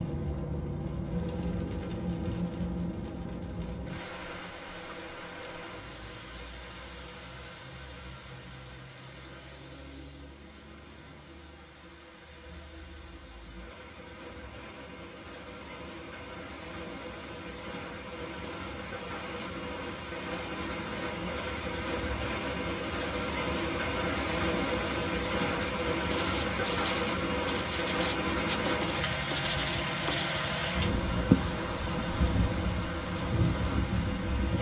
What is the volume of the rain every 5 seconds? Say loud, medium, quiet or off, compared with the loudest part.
medium, quiet, quiet, medium, loud, loud, loud.